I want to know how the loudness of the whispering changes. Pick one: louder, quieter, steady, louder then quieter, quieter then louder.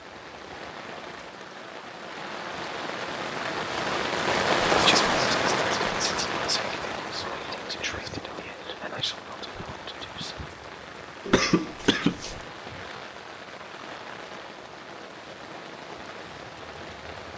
quieter.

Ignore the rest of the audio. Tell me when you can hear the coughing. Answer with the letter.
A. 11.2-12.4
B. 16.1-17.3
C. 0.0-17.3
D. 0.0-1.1
A.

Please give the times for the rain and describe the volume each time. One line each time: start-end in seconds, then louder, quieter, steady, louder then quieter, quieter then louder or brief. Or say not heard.
0.0-17.3 louder then quieter.